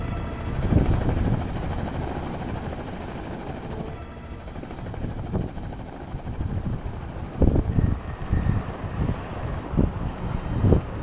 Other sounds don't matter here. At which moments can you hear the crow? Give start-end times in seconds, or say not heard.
not heard.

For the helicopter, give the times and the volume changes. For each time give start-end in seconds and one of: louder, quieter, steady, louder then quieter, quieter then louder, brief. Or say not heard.
0.0-10.9 quieter.